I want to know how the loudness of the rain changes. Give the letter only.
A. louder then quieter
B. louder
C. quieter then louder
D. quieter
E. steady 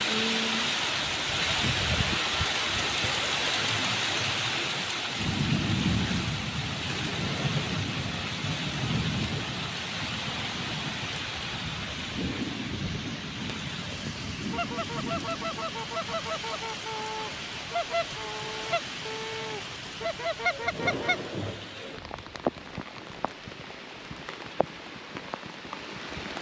D.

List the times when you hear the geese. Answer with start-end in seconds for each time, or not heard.
14.5-21.2.